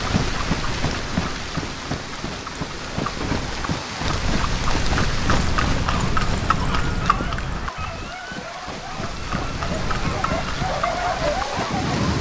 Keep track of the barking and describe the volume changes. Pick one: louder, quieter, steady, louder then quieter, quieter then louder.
louder.